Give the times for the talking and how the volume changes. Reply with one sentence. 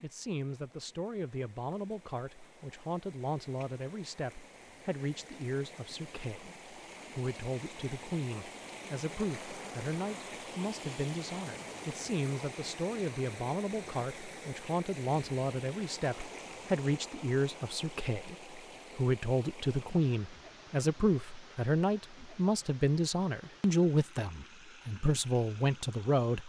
The talking can be heard from 0.0 to 26.4 s, getting louder.